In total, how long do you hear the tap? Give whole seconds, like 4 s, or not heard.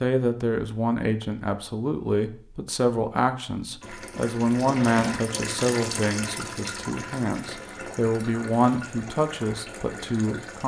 7 s.